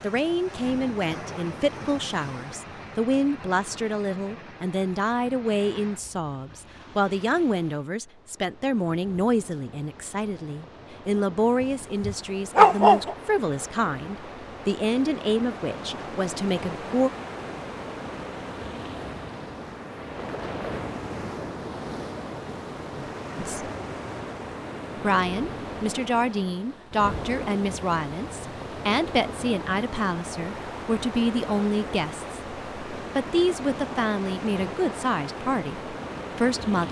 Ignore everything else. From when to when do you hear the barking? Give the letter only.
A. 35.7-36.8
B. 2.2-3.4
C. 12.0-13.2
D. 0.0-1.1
C.